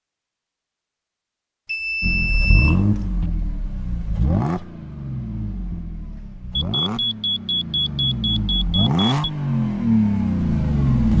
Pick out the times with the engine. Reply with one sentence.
The engine can be heard from 2.0 to 11.1 s.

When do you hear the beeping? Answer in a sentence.
You can hear the beeping from 1.6 to 3.2 s and from 6.5 to 9.1 s.